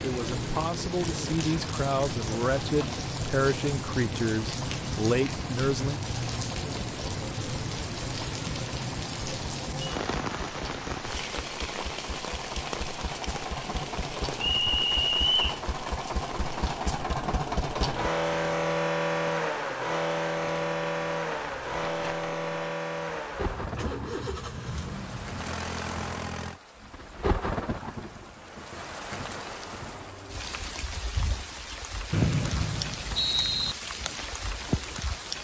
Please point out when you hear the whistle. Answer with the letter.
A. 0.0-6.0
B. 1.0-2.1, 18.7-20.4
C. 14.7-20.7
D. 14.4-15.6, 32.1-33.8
D.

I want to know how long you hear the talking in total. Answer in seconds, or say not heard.
6 s.